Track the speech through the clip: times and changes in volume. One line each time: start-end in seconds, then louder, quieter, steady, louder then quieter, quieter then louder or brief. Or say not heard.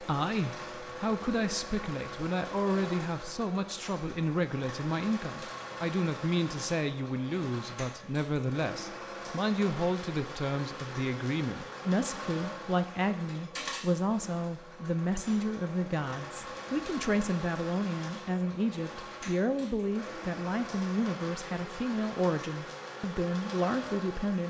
0.0-24.4 steady.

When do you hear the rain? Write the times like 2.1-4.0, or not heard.
not heard.